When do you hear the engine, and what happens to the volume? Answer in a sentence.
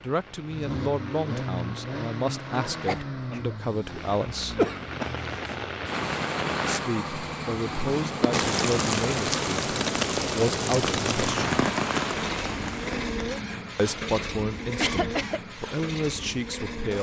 You can hear the engine from 0.0 to 16.9 s, at a steady volume.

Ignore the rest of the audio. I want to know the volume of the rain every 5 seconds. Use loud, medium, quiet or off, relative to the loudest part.
quiet, loud, loud, off.